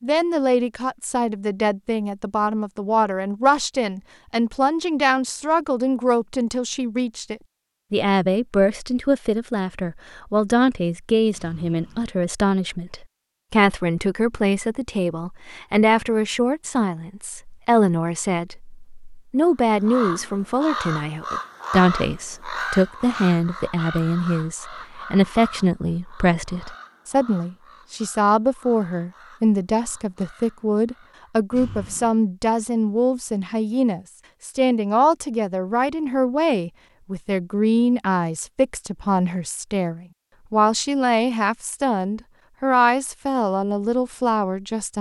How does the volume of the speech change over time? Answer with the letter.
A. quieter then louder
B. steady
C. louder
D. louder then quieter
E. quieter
B.